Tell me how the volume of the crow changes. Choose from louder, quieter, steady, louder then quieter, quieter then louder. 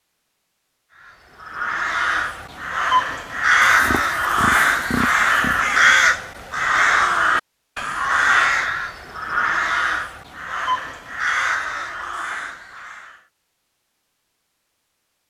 quieter.